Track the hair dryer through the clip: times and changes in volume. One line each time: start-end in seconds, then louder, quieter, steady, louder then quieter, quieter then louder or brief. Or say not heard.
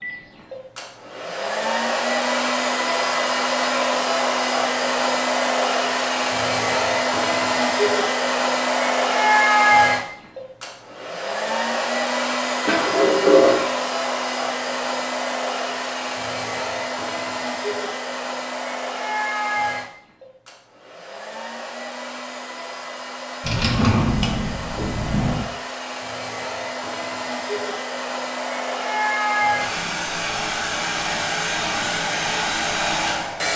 0.0-33.5 quieter then louder.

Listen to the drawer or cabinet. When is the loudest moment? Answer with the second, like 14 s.
13 s.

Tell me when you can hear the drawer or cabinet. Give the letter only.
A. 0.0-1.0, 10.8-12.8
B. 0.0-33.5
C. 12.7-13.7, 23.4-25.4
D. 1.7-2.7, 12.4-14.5
C.